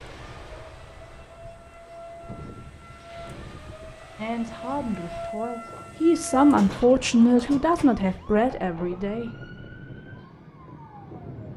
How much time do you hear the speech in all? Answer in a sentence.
The speech can be heard for 5 seconds in total.